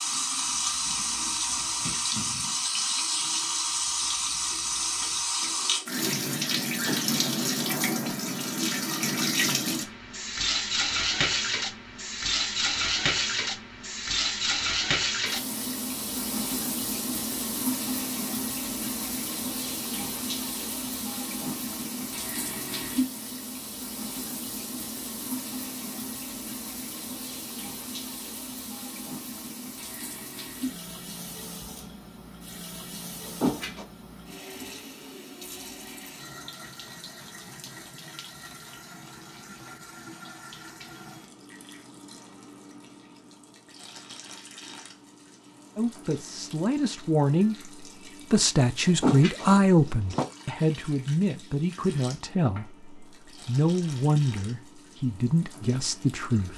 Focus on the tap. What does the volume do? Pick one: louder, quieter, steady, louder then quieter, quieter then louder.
quieter.